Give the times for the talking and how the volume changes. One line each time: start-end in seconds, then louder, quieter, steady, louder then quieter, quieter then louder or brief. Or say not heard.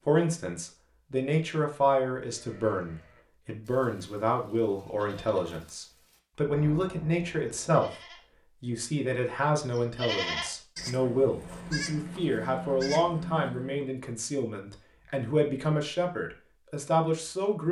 0.0-17.6 steady.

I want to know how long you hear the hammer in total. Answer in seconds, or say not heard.
not heard.